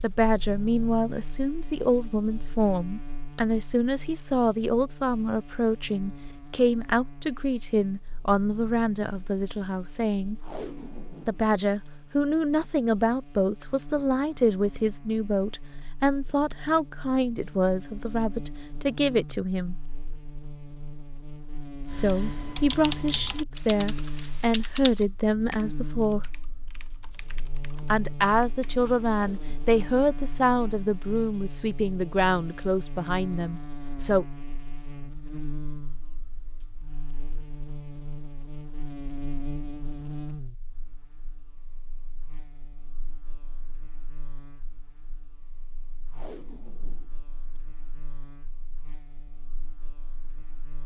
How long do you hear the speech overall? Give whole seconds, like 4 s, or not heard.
30 s.